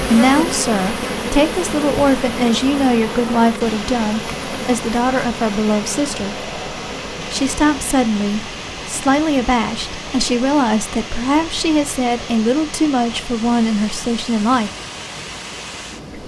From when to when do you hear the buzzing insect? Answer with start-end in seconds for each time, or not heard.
0.0-8.0.